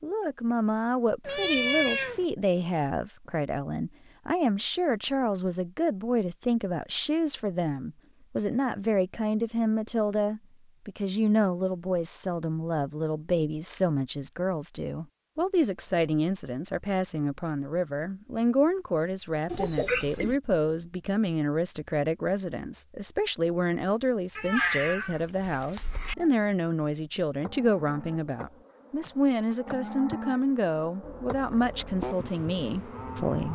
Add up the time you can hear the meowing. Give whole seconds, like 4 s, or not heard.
4 s.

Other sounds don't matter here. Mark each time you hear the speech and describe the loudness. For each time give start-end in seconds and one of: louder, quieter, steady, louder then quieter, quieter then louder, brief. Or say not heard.
0.0-33.5 steady.